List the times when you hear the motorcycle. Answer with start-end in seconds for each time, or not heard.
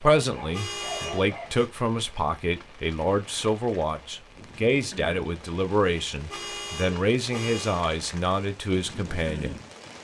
not heard.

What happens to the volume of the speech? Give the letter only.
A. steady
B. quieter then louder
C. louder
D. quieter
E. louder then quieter
A.